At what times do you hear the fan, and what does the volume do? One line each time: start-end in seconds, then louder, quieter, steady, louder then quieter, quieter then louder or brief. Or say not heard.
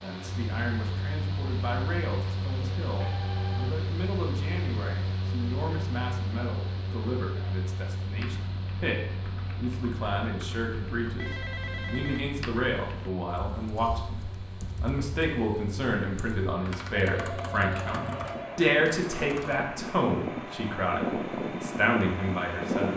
0.0-22.9 quieter then louder.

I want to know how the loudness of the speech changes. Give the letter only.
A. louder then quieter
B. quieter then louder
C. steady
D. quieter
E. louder
E.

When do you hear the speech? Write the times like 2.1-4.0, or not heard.
0.0-22.9.